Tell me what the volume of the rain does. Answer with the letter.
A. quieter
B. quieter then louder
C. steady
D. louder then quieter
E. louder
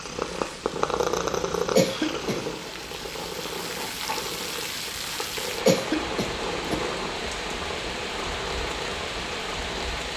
E.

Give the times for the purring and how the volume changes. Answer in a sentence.
You can hear the purring from 0.0 to 9.9 s, getting quieter.